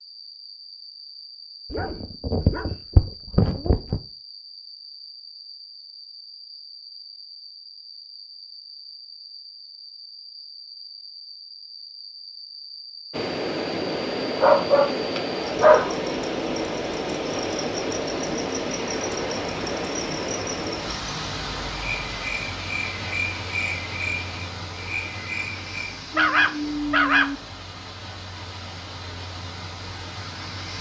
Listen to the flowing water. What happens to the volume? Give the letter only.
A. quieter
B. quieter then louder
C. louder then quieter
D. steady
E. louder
A.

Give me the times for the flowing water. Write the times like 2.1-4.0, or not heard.
13.1-30.7.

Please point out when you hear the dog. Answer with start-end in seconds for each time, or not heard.
1.7-4.0, 14.4-16.0, 26.1-27.4.